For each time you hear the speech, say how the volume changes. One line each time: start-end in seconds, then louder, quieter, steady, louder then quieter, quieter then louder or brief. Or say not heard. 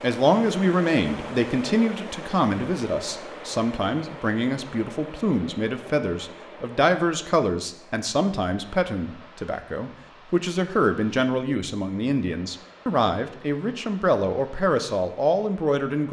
0.0-16.0 steady.